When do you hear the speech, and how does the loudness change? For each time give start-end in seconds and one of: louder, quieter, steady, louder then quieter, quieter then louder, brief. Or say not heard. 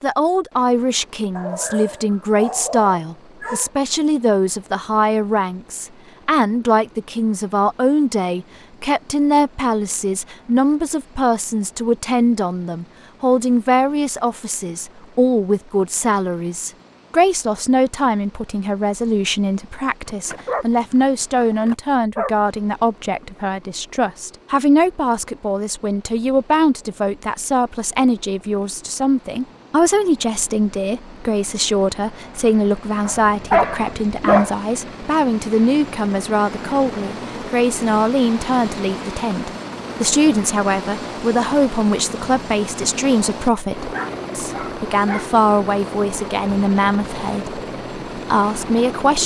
0.0-49.2 steady.